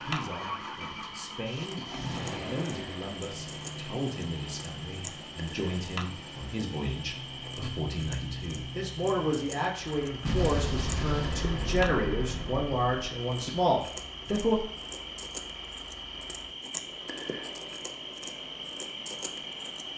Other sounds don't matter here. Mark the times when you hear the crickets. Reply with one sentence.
You can hear the crickets from 0.0 to 19.9 s.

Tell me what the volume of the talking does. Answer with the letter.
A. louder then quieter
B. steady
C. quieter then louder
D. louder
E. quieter
D.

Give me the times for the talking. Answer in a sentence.
You can hear the talking from 0.0 to 14.6 s.